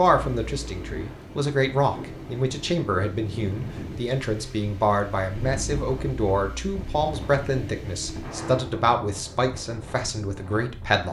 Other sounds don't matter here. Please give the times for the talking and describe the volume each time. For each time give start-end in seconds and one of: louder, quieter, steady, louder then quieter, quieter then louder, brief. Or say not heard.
0.0-11.0 steady.